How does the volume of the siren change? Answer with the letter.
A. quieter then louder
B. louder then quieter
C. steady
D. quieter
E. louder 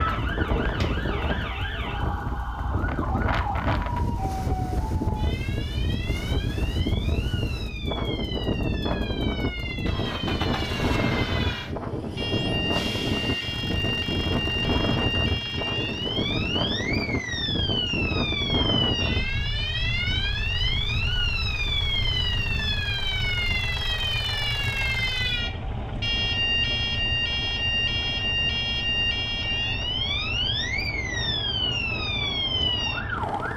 E.